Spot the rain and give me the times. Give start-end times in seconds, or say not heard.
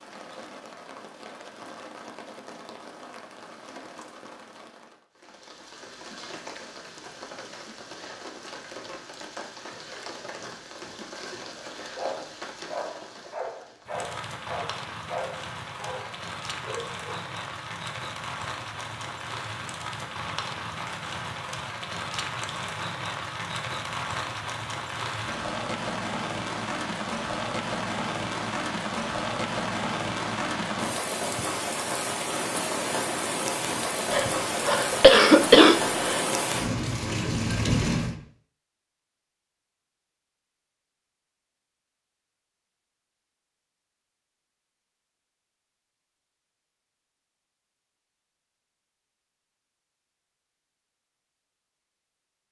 0.0-38.1.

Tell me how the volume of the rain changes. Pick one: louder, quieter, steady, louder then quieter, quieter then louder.
louder.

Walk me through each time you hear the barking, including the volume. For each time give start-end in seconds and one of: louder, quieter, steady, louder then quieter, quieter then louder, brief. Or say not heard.
11.6-17.2 steady.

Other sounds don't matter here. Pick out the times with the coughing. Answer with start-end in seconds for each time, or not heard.
34.1-36.2.